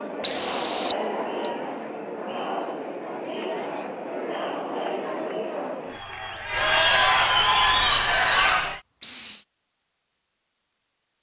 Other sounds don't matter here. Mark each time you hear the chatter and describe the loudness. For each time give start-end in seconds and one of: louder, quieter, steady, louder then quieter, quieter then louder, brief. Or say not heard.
0.0-8.8 louder.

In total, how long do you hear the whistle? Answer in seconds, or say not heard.
3 s.